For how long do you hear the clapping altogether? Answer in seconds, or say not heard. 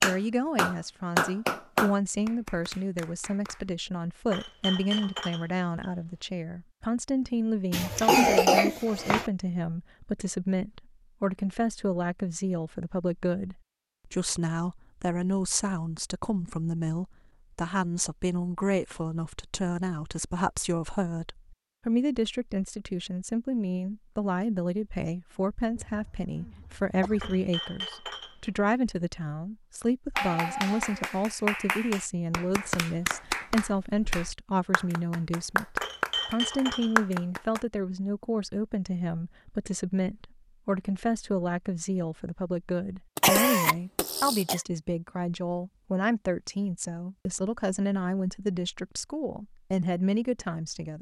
11 s.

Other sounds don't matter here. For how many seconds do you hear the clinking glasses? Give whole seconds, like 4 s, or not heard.
4 s.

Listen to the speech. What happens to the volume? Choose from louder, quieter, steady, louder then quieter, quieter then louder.
steady.